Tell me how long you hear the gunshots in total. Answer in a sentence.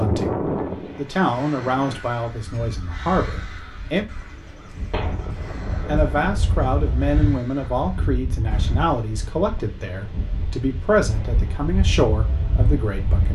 You can hear the gunshots for 2 seconds altogether.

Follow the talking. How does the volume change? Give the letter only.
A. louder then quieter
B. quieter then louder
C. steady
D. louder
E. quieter
C.